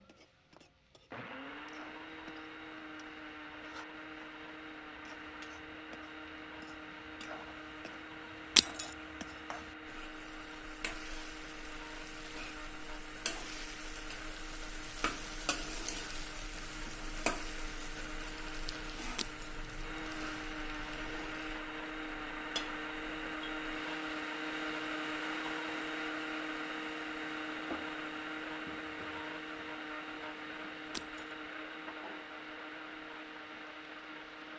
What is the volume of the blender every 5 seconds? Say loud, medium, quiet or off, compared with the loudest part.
medium, medium, medium, medium, loud, loud, medium.